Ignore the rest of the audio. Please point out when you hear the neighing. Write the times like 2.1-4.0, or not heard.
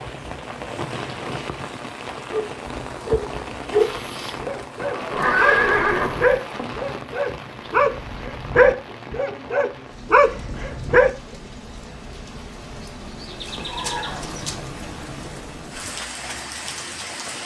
4.8-6.8, 13.4-14.5.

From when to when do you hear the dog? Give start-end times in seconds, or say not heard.
2.2-11.1.